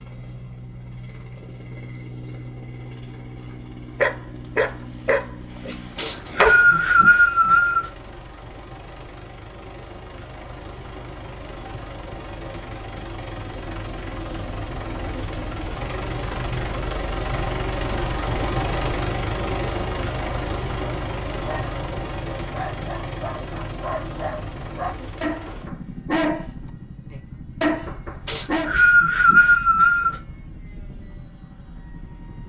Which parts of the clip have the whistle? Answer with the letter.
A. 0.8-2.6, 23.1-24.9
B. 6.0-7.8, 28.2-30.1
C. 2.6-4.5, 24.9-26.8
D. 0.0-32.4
B.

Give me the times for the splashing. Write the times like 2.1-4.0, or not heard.
not heard.